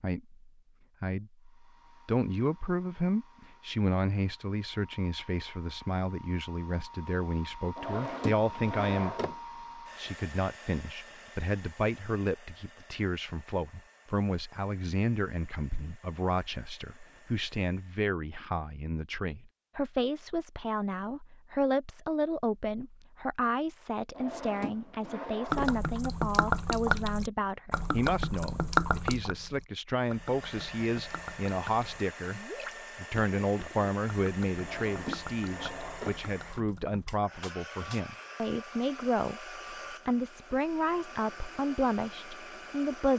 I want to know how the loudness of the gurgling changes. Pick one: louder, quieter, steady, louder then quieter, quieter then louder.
quieter.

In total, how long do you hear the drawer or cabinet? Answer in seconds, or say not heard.
5 s.